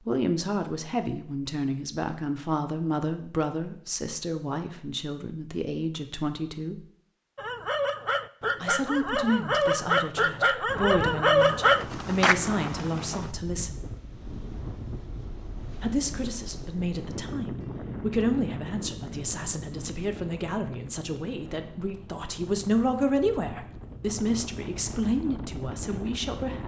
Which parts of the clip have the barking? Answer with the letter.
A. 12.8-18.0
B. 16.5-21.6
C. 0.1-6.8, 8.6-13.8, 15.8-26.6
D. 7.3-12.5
D.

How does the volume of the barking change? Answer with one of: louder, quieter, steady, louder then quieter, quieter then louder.
louder.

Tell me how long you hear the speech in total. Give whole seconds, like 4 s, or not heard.
23 s.